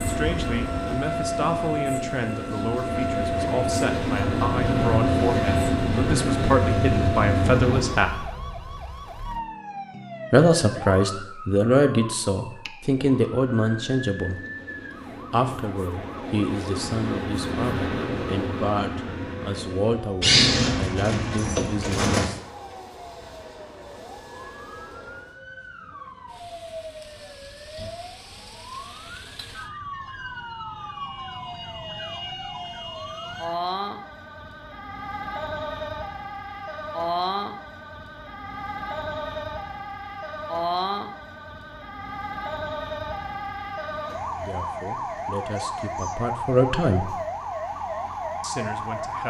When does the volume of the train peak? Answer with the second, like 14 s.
5 s.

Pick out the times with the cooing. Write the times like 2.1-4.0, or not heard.
20.2-22.3.